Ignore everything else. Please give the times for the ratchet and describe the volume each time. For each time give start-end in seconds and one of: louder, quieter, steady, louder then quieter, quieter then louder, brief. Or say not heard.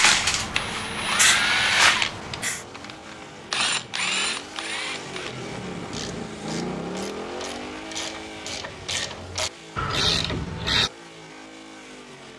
0.0-2.9 brief
3.5-10.9 quieter then louder.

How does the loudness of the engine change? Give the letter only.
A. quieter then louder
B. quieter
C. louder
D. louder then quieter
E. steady
D.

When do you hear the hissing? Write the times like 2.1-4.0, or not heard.
0.0-2.6.